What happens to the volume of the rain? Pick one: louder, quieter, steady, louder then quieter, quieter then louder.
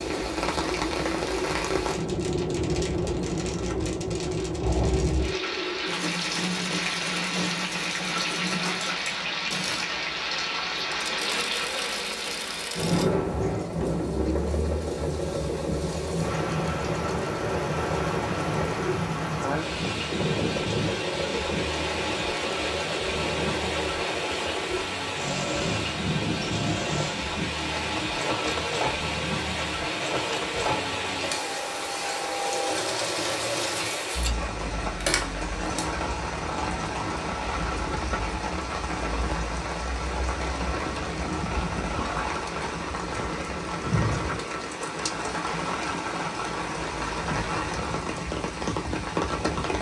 steady.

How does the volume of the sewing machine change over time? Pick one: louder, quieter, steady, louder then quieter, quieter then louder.
steady.